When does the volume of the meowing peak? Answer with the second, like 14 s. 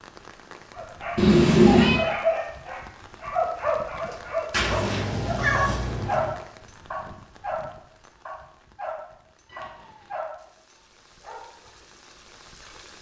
2 s.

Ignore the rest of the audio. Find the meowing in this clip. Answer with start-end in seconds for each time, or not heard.
1.1-2.0, 4.5-6.3, 9.4-10.2.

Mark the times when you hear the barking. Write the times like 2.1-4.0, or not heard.
0.8-6.3, 6.9-7.7, 8.2-10.3, 11.2-11.7.